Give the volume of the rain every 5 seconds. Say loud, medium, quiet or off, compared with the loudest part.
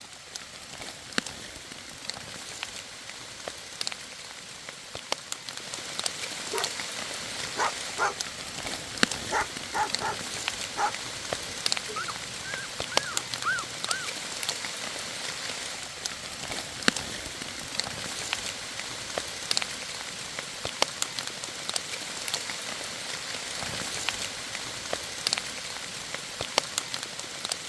medium, loud, loud, loud, loud, loud.